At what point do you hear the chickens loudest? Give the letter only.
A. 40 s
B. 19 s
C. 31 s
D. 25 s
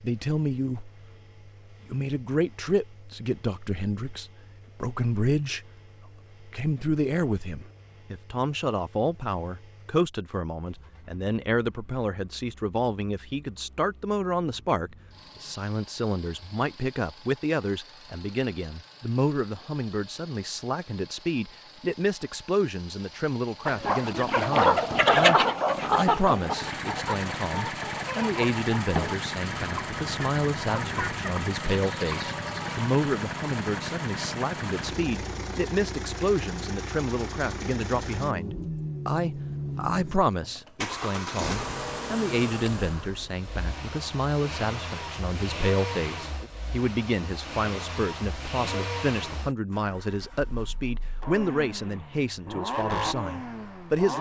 D.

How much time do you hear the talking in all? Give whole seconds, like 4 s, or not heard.
52 s.